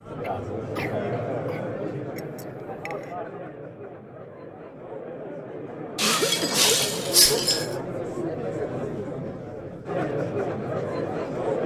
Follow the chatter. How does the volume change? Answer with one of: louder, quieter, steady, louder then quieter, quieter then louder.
quieter then louder.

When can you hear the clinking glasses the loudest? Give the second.
7 s.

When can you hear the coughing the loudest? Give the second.
6 s.